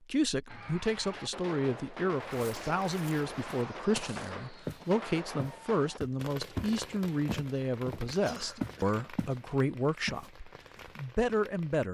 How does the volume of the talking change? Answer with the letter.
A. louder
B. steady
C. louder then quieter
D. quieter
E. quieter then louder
B.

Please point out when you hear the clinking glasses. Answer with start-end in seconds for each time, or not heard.
not heard.